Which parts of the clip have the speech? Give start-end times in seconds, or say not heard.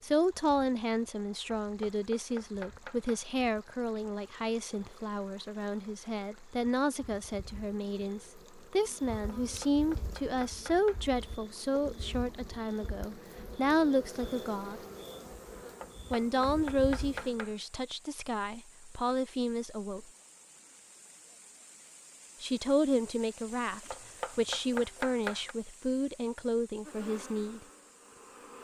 0.0-14.8, 16.1-20.1, 22.4-27.6.